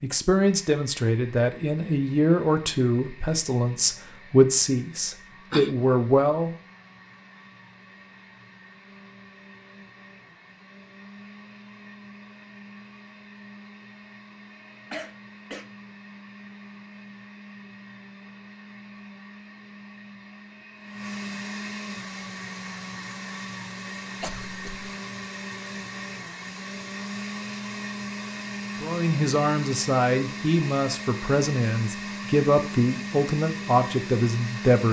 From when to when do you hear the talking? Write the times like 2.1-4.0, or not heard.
0.0-6.5, 28.8-34.8.